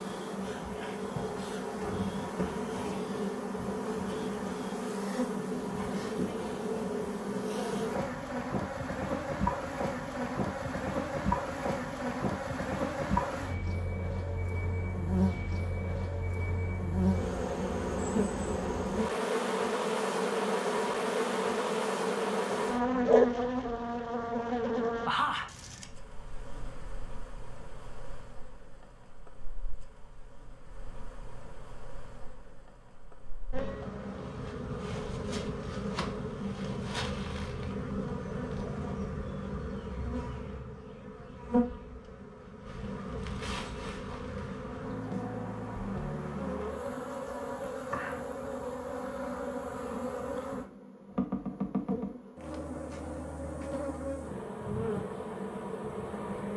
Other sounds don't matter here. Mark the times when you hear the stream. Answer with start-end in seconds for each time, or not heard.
not heard.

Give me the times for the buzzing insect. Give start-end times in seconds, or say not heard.
0.0-56.5.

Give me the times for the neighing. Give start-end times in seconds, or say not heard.
not heard.